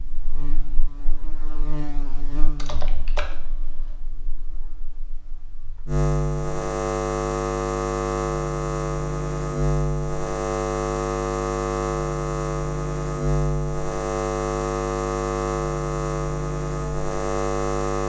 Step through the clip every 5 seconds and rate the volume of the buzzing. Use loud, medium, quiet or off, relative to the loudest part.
quiet, loud, loud, loud.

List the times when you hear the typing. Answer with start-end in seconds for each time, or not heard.
2.5-4.0.